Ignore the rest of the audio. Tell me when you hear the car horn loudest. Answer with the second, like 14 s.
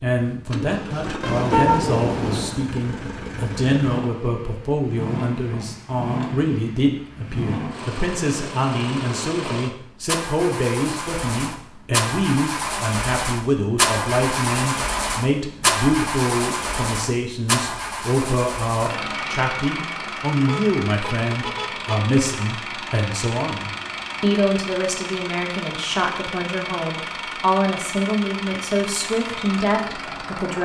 2 s.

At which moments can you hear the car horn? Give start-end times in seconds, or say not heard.
1.2-2.5, 20.4-22.1.